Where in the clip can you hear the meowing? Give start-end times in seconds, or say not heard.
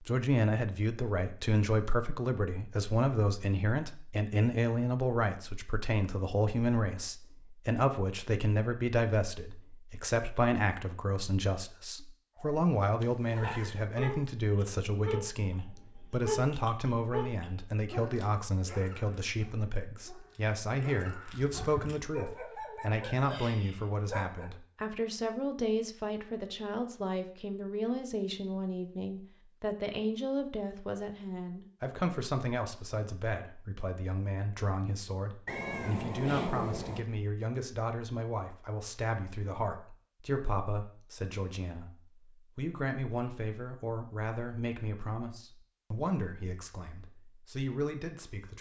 13.0-13.9, 35.5-37.0.